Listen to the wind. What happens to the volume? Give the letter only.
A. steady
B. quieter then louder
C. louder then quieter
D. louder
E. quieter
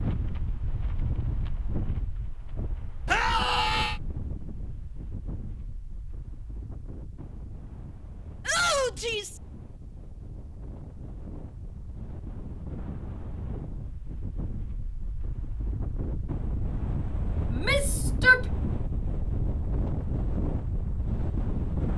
B.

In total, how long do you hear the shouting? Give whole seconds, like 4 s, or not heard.
3 s.